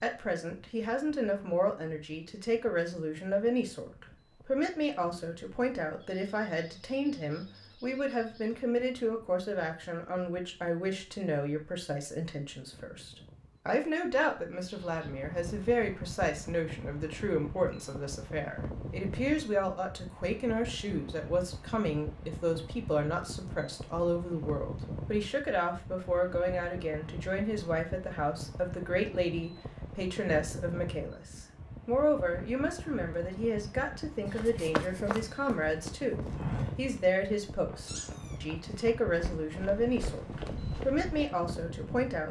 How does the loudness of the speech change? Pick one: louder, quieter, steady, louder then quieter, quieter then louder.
steady.